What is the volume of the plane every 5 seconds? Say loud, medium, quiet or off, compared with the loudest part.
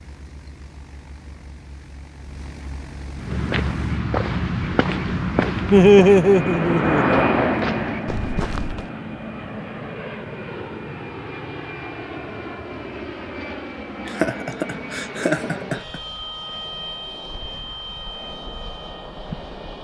quiet, loud, medium, medium.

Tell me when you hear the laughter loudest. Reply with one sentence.
The volume of the laughter peaks at 6 seconds.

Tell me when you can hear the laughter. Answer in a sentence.
You can hear the laughter from 5.7 to 7.5 s and from 14.1 to 15.9 s.